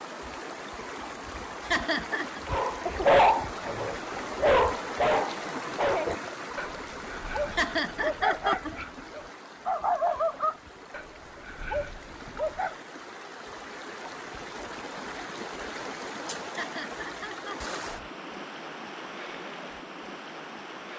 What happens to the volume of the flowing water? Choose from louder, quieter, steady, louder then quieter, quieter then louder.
quieter then louder.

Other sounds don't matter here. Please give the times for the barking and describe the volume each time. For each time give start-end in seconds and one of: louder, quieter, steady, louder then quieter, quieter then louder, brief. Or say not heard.
2.5-12.8 quieter.